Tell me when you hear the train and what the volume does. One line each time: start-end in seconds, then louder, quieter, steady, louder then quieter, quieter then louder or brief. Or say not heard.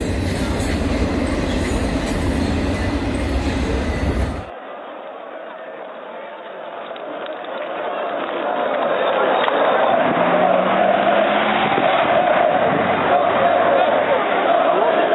0.0-4.5 steady.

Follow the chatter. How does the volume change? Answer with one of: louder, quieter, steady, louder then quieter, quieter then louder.
louder.